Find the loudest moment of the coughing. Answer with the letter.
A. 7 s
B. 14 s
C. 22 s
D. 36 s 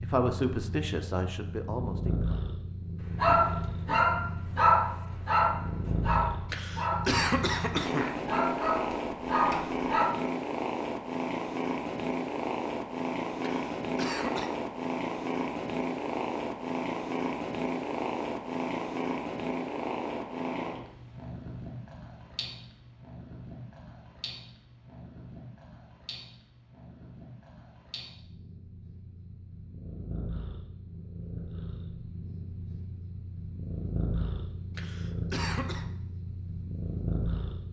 A.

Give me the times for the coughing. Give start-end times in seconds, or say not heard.
6.5-8.2, 13.4-14.5, 34.8-35.9.